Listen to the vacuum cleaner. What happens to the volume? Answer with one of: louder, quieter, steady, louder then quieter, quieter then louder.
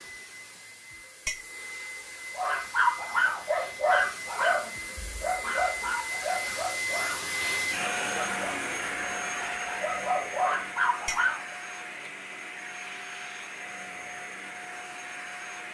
louder then quieter.